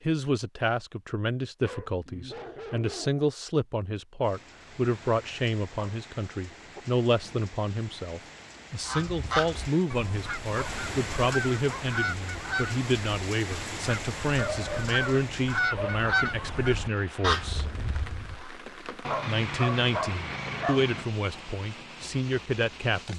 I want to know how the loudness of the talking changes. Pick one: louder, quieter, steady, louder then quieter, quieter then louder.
steady.